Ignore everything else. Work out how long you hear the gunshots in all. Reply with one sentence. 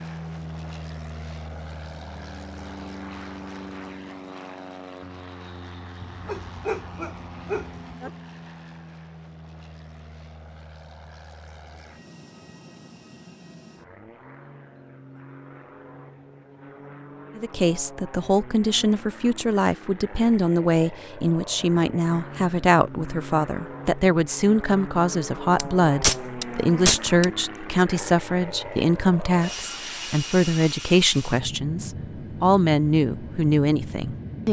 The gunshots can be heard for 2 seconds in total.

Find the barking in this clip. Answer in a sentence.
The barking can be heard from 6.0 to 8.1 s.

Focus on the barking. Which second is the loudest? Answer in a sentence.
The loudest moment of the barking is at 7 seconds.